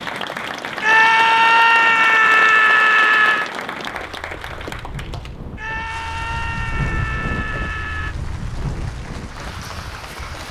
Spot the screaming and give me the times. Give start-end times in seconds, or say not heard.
0.8-3.5, 5.5-8.2.